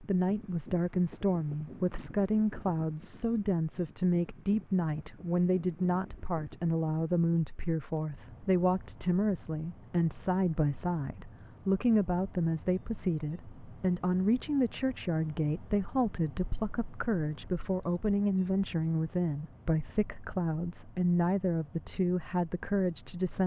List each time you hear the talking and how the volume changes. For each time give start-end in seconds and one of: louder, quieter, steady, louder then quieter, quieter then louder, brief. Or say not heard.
0.0-23.4 steady.